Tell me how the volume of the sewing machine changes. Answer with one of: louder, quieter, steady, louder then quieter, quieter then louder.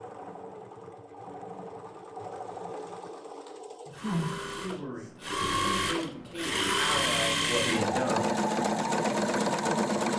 louder.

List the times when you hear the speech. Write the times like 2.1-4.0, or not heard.
4.5-8.2.